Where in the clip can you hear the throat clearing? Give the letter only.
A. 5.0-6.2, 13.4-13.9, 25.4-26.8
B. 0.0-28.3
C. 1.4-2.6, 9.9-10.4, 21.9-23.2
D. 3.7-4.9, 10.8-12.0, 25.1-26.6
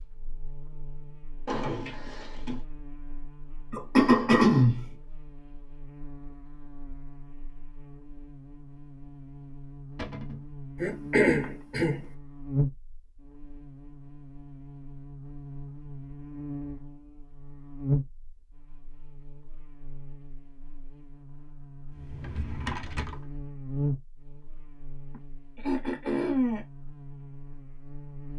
D.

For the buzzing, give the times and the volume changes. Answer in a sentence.
The buzzing can be heard from 0.0 to 28.3 s, getting louder.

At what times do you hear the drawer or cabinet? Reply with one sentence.
The drawer or cabinet can be heard from 1.4 to 2.6 s, from 9.9 to 10.4 s and from 21.9 to 23.2 s.